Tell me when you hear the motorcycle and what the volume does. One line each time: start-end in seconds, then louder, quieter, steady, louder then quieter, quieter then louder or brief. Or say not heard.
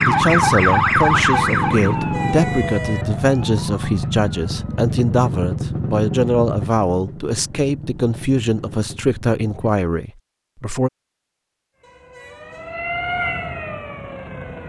0.0-9.8 quieter.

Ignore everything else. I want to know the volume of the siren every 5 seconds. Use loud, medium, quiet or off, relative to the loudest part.
loud, off, medium.